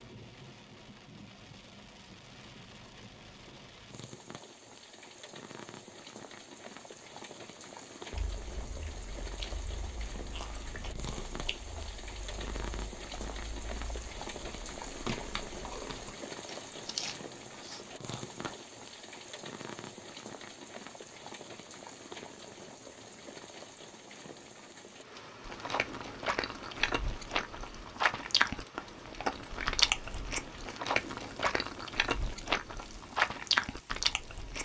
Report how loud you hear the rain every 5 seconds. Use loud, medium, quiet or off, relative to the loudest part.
medium, loud, loud, loud, loud, medium, medium.